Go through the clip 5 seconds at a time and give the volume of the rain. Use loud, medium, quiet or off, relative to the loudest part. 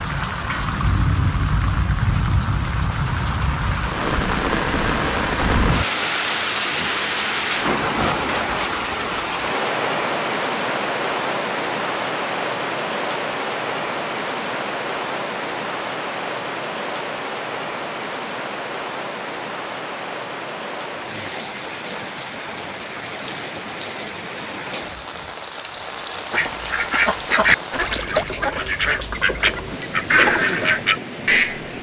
loud, loud, loud, medium, medium, medium, medium.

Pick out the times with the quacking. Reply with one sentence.
You can hear the quacking from 26.3 to 31.7 s.